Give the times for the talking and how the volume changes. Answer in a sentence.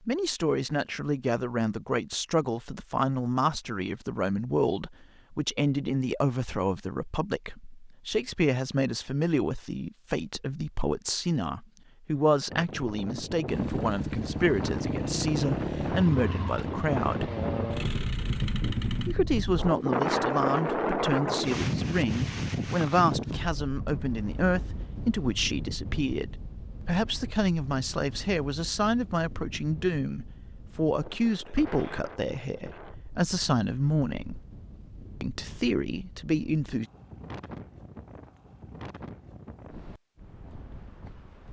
The talking can be heard from 0.1 to 17.3 s, at a steady volume; from 19.1 to 34.4 s, at a steady volume; and briefly from 35.2 to 36.9 s.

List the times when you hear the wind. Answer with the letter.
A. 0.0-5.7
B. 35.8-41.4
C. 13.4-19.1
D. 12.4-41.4
D.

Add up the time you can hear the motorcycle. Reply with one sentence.
The motorcycle can be heard for 6 seconds in total.